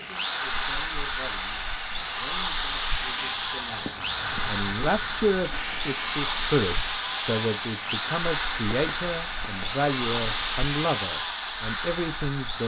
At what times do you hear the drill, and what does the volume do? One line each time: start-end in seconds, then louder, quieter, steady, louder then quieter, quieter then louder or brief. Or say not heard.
0.0-12.6 steady.